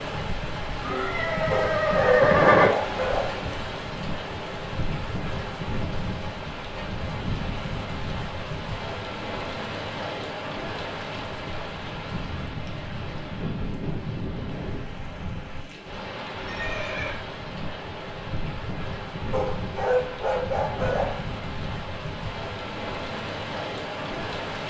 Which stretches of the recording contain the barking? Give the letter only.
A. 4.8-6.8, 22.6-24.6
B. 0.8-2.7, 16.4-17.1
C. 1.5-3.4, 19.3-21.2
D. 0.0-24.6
C.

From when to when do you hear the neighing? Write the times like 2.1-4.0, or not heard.
0.8-2.7, 16.4-17.1.